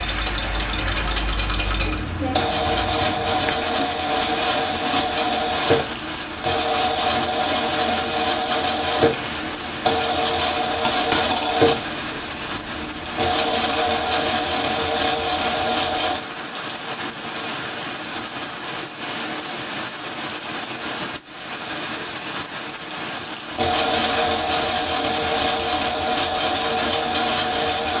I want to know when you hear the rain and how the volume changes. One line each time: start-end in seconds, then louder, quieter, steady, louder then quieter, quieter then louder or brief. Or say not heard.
0.0-27.9 steady.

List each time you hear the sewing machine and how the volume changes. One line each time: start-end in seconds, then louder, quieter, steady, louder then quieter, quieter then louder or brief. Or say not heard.
0.0-16.2 steady
23.5-27.9 steady.